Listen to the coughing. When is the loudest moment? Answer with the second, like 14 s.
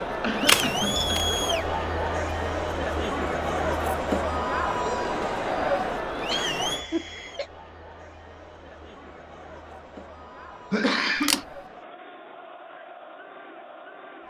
11 s.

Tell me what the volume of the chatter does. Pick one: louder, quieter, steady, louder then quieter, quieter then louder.
quieter.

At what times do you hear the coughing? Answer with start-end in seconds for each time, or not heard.
0.2-1.1, 6.2-7.5, 10.7-11.4.